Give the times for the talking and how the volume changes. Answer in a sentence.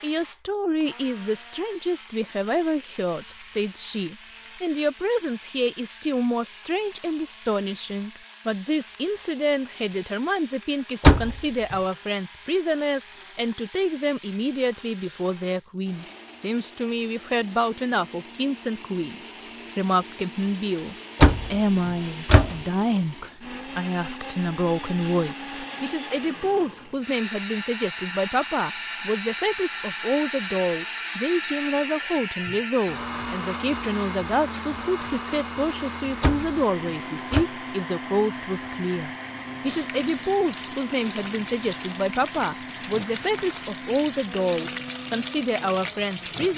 The talking can be heard from 0.0 to 46.5 s, at a steady volume.